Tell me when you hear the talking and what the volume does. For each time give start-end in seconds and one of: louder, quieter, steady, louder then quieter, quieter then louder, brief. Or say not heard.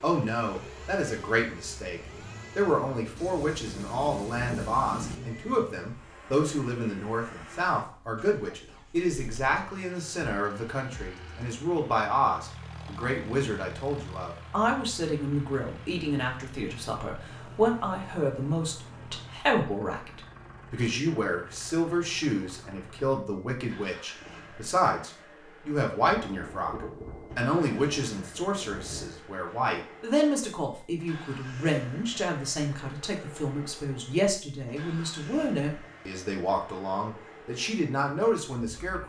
0.0-39.0 steady.